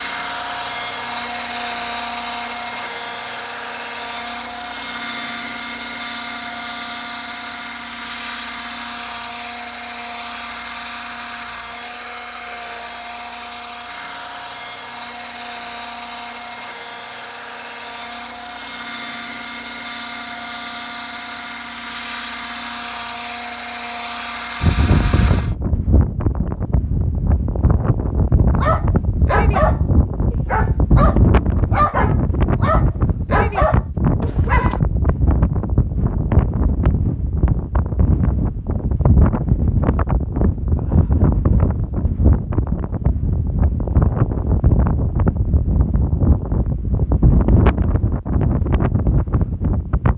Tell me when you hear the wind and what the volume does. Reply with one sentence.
The wind can be heard from 24.6 to 50.1 s, at a steady volume.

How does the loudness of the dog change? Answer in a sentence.
The volume of the dog stays about the same.